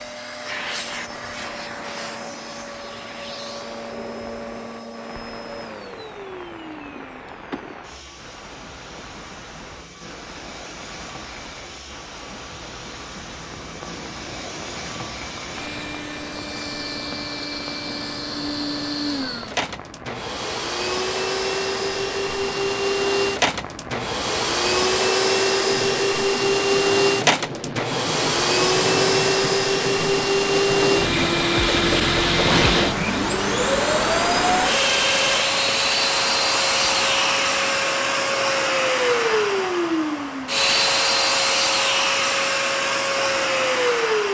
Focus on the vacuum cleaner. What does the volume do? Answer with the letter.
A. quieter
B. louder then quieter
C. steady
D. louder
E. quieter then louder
D.